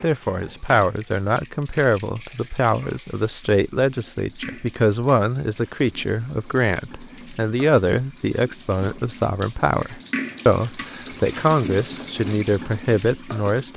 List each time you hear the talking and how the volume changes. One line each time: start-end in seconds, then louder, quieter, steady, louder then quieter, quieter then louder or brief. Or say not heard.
0.0-13.7 steady.